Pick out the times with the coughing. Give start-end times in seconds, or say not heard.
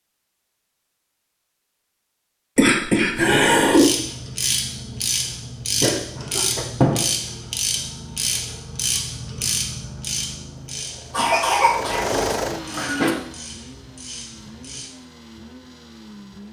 2.5-3.9, 5.8-6.7, 11.1-13.2.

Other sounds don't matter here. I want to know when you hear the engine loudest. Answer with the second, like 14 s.
12 s.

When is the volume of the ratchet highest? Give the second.
7 s.